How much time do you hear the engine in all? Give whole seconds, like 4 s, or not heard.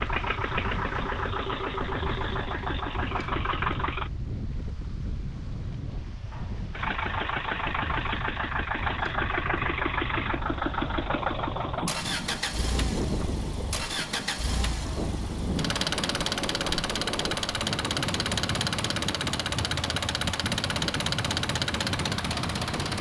20 s.